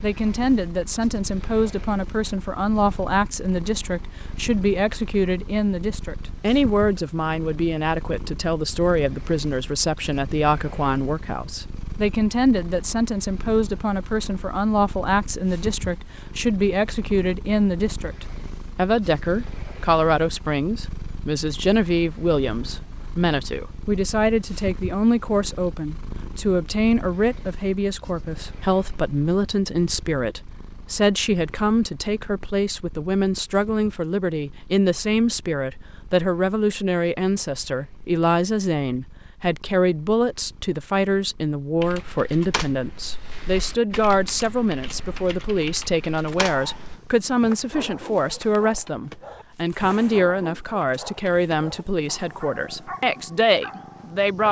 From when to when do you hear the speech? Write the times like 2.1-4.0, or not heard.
0.0-54.4.